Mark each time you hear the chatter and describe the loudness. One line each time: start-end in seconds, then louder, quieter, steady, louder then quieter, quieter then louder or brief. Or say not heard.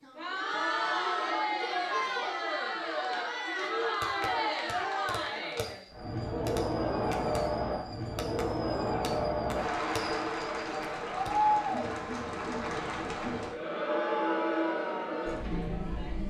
0.0-16.2 steady.